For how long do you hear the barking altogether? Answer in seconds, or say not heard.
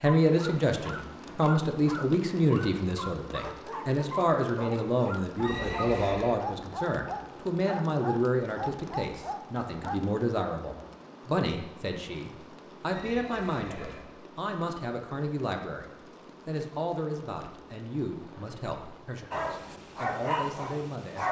12 s.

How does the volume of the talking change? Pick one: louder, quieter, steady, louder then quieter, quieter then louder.
quieter.